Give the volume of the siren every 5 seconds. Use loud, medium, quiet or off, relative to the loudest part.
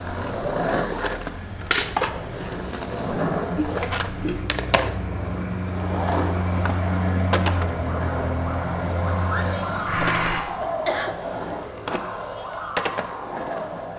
off, loud, loud.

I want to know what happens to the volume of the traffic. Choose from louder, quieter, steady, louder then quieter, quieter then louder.
louder.